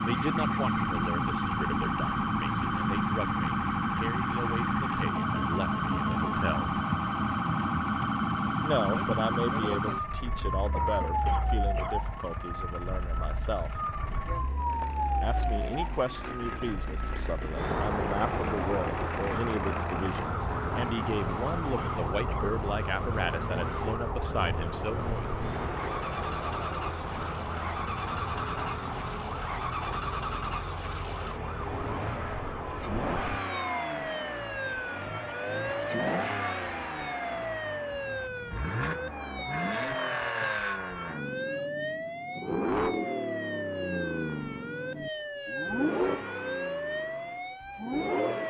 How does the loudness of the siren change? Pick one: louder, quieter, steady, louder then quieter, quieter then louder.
quieter.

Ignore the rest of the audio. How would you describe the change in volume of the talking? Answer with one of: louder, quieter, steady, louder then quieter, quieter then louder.
steady.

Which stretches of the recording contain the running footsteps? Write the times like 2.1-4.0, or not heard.
not heard.